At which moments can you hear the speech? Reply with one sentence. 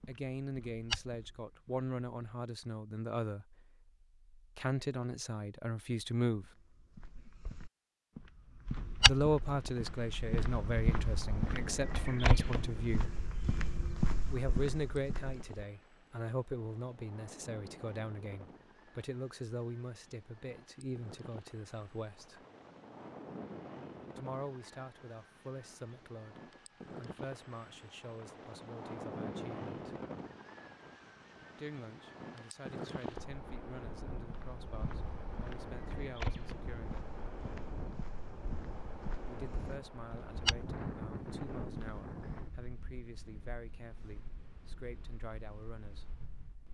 The speech can be heard from 0.1 to 6.5 s, from 9.1 to 13.2 s, from 14.3 to 22.4 s, from 24.1 to 30.0 s, from 31.6 to 37.1 s and from 39.2 to 46.2 s.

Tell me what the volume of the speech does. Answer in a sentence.
The loudness of the speech goes down.